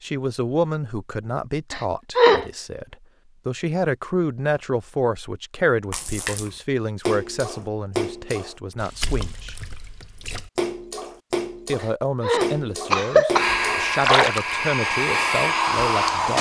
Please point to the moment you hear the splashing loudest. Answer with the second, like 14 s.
14 s.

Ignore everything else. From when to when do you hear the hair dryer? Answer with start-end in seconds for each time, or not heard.
13.3-16.3.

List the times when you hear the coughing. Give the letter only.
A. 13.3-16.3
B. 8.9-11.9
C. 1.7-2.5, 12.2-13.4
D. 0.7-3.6
C.